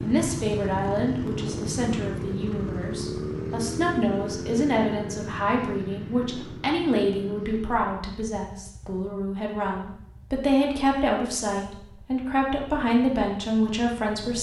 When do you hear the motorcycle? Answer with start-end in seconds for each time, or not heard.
0.0-14.3.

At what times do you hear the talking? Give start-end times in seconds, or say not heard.
0.0-14.3.